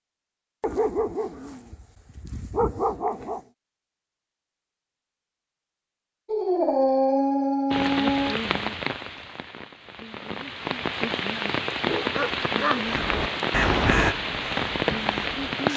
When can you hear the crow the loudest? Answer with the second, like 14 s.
14 s.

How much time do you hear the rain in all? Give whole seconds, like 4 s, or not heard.
8 s.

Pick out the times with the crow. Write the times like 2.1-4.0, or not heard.
12.8-15.7.